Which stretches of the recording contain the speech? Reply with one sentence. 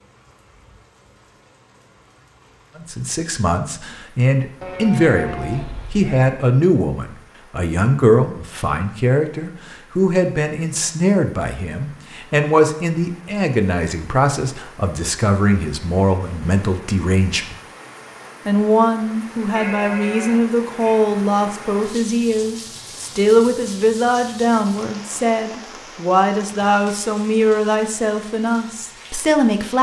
You can hear the speech from 2.8 to 17.6 s and from 18.4 to 29.7 s.